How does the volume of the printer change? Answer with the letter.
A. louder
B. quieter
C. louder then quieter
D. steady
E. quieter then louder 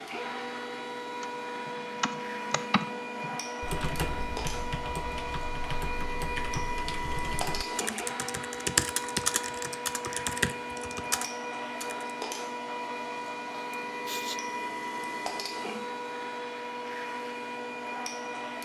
D.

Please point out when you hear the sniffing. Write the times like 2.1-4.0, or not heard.
13.7-14.4.